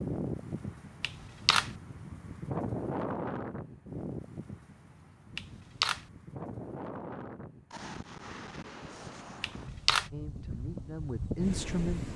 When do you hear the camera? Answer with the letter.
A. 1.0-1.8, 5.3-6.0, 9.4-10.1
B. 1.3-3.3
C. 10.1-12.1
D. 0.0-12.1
A.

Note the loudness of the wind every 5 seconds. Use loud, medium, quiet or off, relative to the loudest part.
loud, medium, loud.